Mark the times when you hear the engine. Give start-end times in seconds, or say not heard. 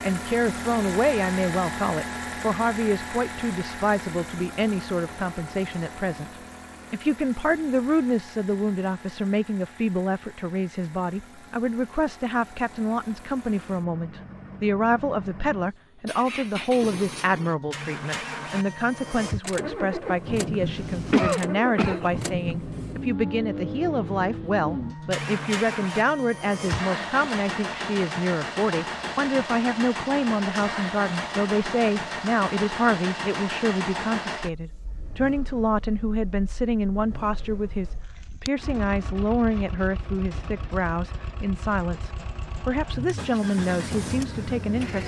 0.0-45.0.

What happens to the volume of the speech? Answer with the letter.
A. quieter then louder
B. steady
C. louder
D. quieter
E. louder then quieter
B.